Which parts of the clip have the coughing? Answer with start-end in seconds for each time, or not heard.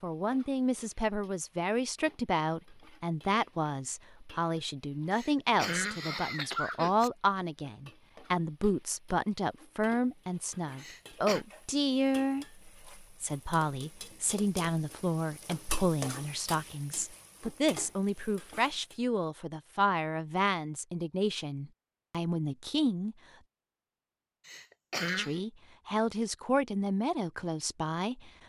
5.1-7.1, 10.8-11.4, 24.4-25.4.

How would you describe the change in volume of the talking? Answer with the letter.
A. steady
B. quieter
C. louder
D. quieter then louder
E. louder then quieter
A.